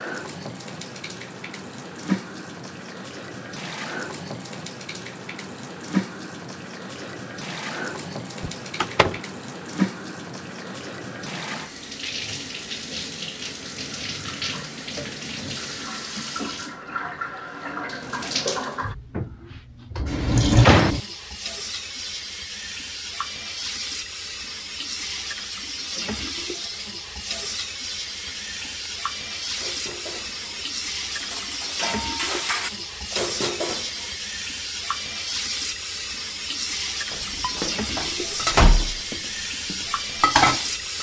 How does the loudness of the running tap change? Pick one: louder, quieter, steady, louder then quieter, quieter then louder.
steady.